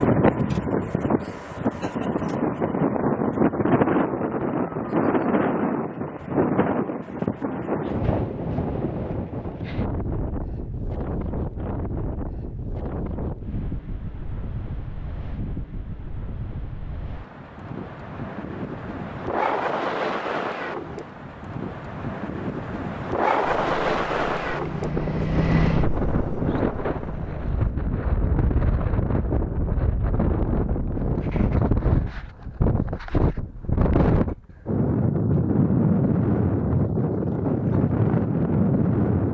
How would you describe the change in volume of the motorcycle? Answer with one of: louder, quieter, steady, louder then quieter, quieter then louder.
louder then quieter.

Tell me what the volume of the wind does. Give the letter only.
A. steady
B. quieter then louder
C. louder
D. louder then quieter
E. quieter
B.